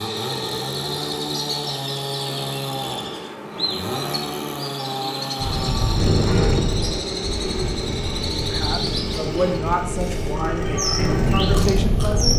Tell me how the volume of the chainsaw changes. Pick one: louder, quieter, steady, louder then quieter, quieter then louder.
steady.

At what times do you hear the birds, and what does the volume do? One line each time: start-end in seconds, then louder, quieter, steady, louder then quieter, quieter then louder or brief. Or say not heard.
0.0-12.3 steady.